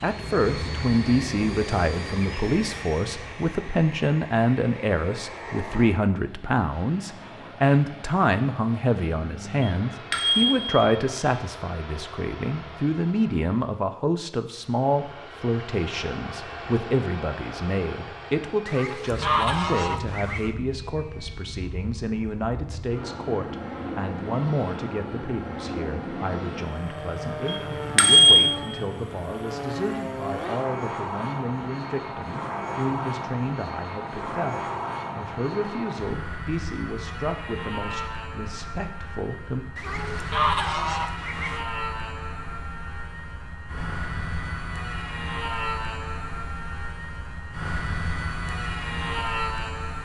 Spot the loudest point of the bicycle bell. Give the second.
28 s.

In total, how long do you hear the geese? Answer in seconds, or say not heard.
4 s.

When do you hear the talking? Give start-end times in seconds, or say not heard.
0.0-39.6.